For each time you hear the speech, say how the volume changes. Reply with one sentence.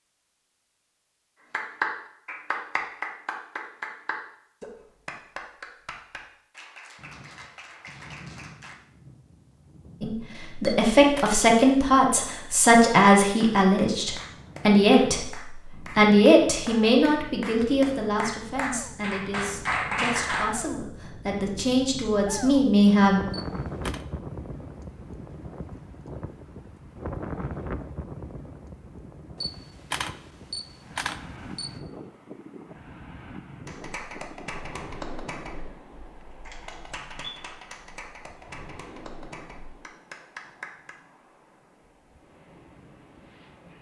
You can hear the speech from 10.0 to 23.2 s, getting quieter then louder.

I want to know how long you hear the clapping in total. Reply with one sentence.
You can hear the clapping for 22 seconds altogether.